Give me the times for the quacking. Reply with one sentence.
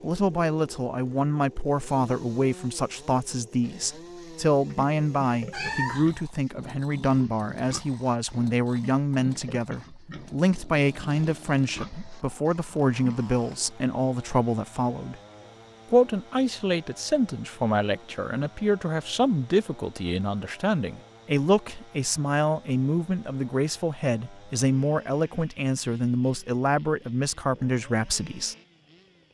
The quacking can't be heard in this clip.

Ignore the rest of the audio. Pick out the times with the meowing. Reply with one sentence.
You can hear the meowing from 5.5 to 6.1 s.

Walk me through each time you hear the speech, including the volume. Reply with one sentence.
The speech can be heard from 0.0 to 15.2 s, at a steady volume; and from 15.9 to 28.6 s, at a steady volume.